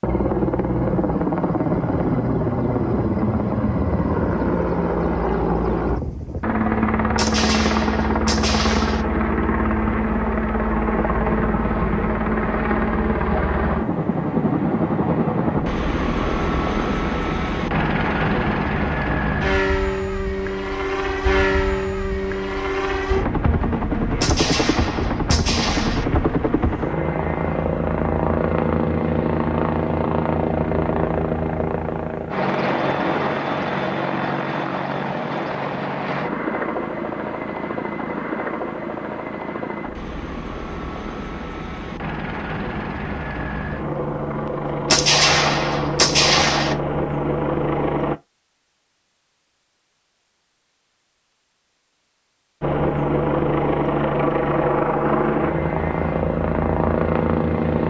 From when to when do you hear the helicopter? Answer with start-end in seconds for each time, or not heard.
0.0-48.1, 52.6-57.8.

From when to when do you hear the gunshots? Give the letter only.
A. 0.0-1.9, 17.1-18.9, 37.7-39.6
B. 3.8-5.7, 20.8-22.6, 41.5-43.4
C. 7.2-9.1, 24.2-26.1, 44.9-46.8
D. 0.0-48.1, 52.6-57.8
C.